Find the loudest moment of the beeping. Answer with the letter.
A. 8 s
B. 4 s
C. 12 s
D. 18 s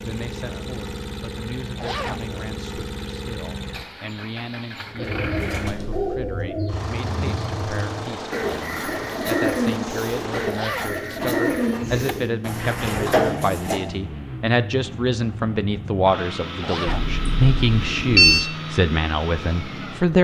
D.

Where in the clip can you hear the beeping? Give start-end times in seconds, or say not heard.
16.9-18.5.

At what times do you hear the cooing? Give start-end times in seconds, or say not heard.
5.0-13.8.